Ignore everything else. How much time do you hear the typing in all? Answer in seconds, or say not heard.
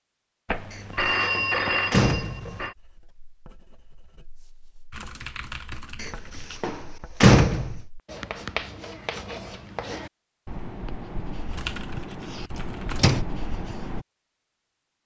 3 s.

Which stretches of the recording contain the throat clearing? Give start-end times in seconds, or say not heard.
not heard.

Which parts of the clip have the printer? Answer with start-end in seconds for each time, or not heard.
not heard.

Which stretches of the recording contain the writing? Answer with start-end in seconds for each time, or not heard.
2.8-14.1.